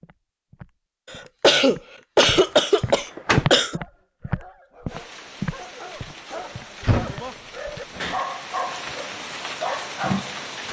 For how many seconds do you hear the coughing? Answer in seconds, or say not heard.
3 s.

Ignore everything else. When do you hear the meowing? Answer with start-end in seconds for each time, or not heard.
not heard.